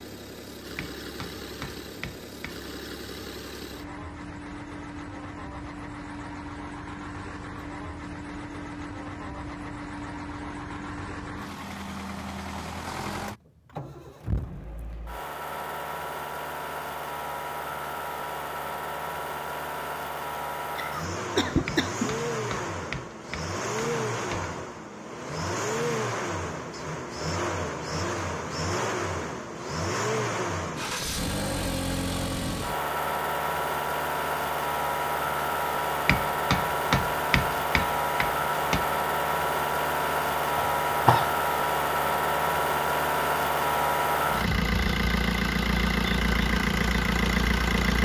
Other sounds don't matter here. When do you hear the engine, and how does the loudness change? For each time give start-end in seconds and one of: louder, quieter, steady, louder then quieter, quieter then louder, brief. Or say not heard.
0.0-48.0 louder.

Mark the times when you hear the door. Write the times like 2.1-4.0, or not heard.
not heard.